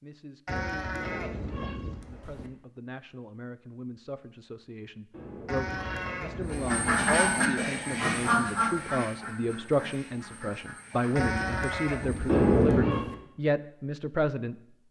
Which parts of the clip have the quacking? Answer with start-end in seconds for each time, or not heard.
6.5-12.5.